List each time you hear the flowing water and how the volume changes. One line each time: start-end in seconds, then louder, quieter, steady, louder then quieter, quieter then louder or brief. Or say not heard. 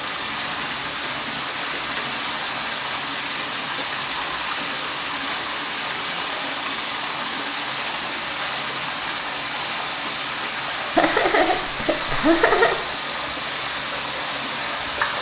0.0-15.1 steady.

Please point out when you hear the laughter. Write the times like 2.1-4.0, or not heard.
10.9-12.8.